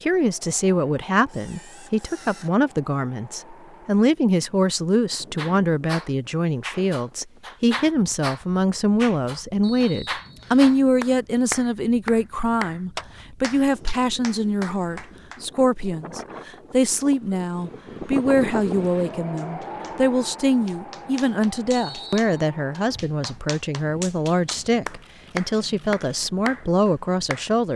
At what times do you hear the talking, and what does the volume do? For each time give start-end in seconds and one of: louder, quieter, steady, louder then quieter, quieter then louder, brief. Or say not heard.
0.0-27.7 steady.